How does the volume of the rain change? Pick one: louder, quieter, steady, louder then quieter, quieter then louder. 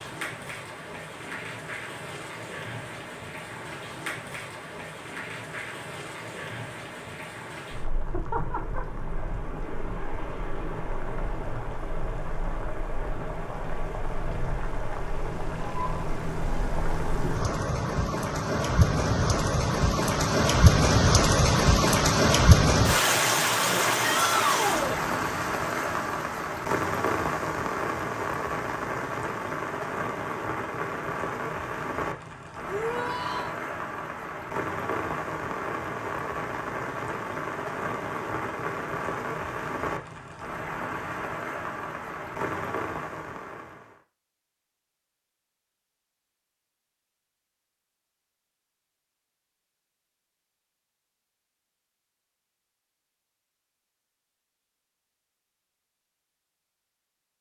louder then quieter.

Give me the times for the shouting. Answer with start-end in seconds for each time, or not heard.
24.0-25.0, 32.6-33.5.